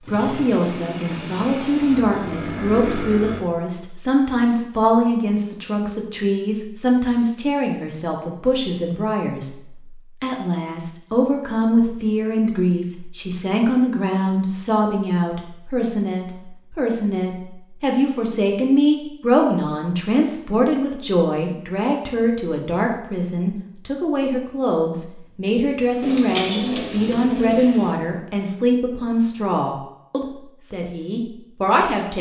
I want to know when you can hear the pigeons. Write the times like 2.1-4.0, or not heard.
26.0-27.9.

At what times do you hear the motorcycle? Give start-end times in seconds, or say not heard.
0.0-3.5.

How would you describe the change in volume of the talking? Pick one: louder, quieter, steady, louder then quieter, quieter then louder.
steady.